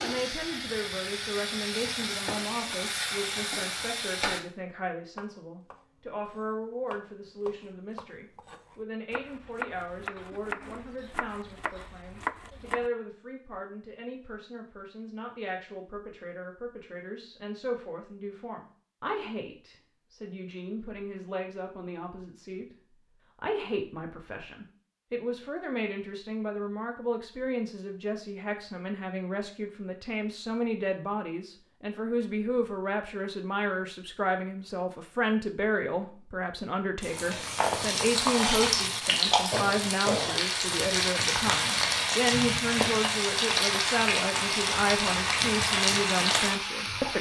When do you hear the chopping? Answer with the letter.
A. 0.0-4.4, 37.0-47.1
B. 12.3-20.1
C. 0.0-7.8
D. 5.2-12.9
D.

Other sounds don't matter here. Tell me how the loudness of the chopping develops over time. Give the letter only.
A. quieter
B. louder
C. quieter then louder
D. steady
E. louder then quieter
B.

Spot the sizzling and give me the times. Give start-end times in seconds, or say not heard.
0.0-4.4, 37.0-47.1.